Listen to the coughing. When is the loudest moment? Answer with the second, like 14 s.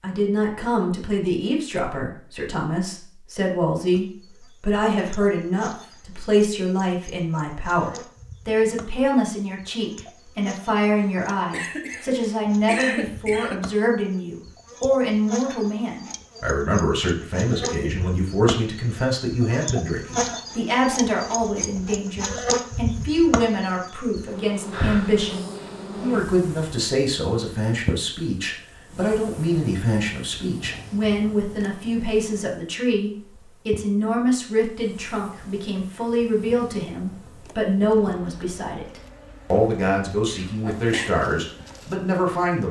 13 s.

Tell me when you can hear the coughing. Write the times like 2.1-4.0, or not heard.
10.9-13.6, 40.2-41.1.